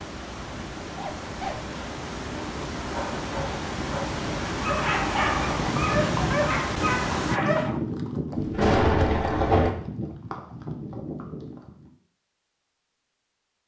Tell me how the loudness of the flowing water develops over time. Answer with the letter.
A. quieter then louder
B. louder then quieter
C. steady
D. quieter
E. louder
E.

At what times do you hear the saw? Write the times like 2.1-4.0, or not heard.
not heard.